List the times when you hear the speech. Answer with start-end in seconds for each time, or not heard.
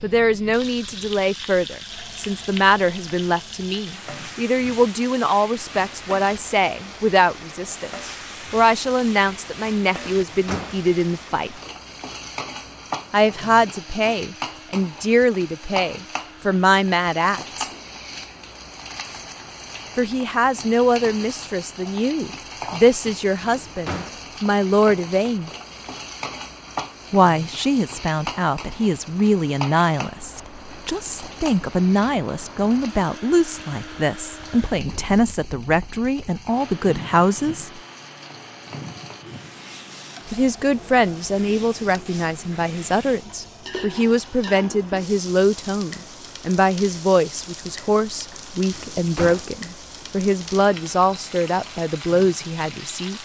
0.0-11.6, 13.1-17.6, 19.9-25.5, 27.1-37.8, 40.3-53.2.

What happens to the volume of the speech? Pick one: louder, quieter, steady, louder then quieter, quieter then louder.
steady.